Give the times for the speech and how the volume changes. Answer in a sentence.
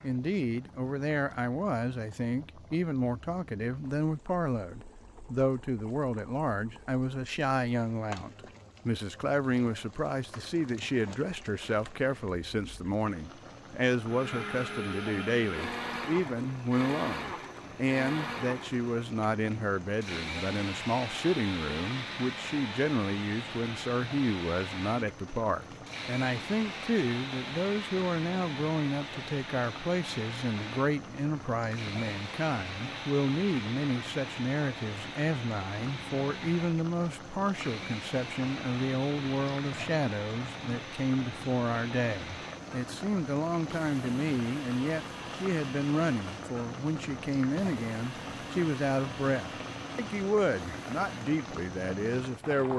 You can hear the speech from 0.0 to 52.7 s, at a steady volume.